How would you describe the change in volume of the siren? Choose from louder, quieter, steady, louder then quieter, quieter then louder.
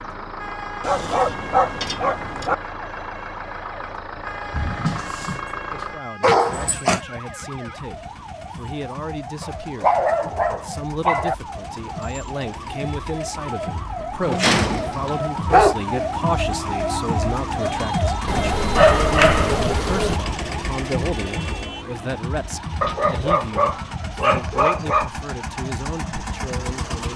louder then quieter.